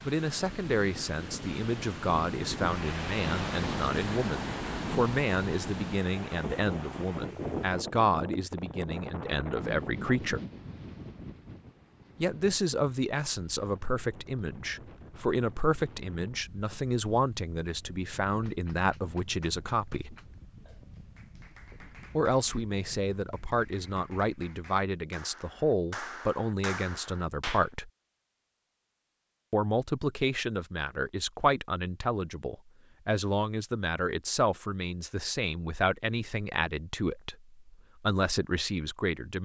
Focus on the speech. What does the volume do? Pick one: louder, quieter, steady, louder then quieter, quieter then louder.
steady.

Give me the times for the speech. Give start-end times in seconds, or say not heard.
0.0-10.4, 12.2-20.1, 22.1-27.9, 29.5-39.4.